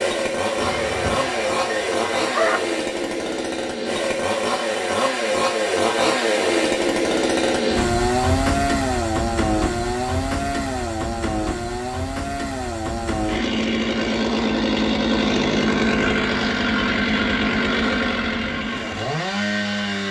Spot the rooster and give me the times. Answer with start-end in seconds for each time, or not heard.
0.6-2.6.